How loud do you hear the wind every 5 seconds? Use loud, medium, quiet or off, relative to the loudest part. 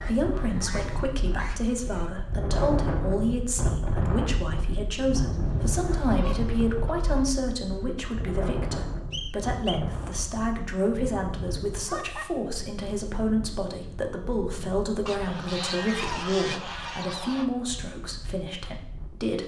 loud, loud, medium, quiet.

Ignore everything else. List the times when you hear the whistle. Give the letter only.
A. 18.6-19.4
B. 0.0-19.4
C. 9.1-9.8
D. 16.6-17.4
C.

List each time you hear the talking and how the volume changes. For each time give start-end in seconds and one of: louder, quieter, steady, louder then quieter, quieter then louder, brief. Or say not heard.
0.0-19.4 steady.